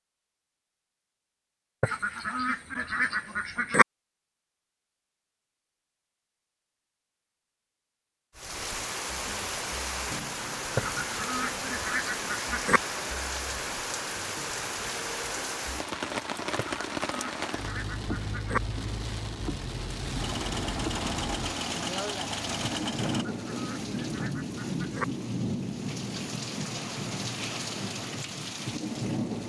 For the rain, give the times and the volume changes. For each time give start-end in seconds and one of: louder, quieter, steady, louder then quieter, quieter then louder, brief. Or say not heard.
8.3-29.4 steady.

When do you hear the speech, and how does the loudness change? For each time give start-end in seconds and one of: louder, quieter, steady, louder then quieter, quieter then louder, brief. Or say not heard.
not heard.